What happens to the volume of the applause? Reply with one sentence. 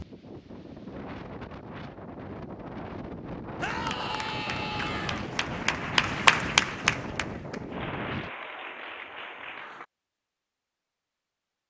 The loudness of the applause goes up, then down.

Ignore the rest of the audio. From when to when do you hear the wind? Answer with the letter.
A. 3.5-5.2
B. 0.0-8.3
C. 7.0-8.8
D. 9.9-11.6
B.